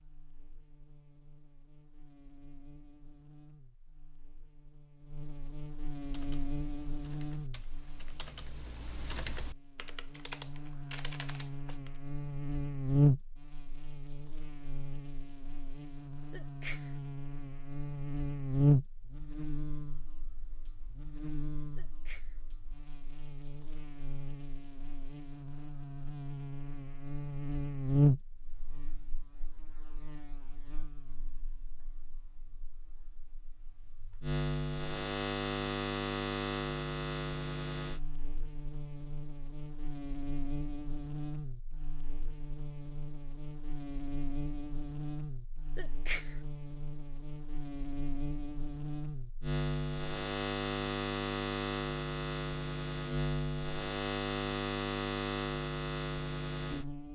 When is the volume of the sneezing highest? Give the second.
46 s.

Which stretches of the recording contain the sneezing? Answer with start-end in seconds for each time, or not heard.
16.3-16.9, 21.8-22.4, 45.8-46.4.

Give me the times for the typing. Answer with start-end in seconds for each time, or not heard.
6.0-12.0.